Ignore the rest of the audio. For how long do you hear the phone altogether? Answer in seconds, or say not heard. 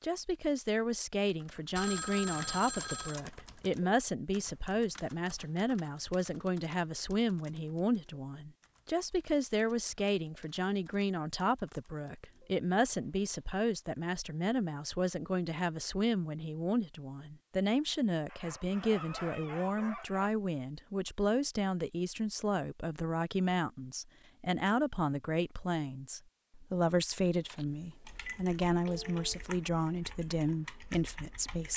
3 s.